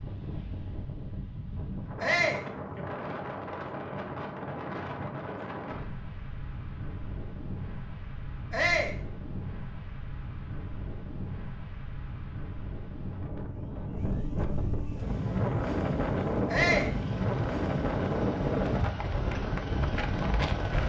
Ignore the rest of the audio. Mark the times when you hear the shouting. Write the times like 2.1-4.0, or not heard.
2.0-2.5, 8.5-8.9, 16.5-16.9.